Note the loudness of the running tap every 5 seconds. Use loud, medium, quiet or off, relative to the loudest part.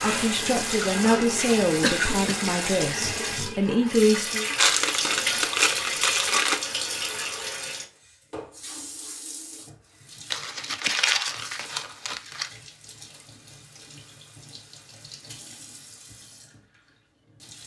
loud, loud, quiet, quiet.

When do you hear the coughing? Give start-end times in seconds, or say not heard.
1.8-2.4.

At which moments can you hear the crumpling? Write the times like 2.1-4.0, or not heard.
4.5-6.6, 10.3-12.5.